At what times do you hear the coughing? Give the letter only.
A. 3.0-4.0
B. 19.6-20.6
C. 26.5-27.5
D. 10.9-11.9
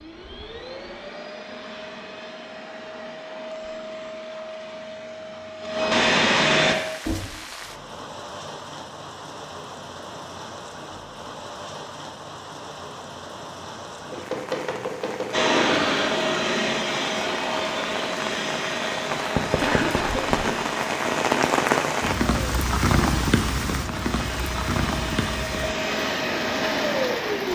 B.